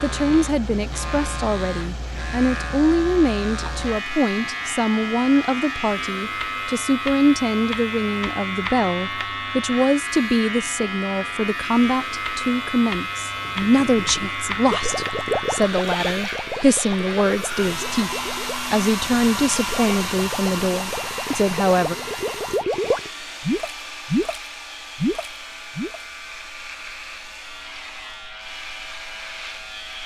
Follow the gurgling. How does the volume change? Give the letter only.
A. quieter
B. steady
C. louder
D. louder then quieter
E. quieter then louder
E.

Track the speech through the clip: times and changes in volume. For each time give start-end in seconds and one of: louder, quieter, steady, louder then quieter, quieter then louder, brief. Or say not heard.
0.0-21.9 steady.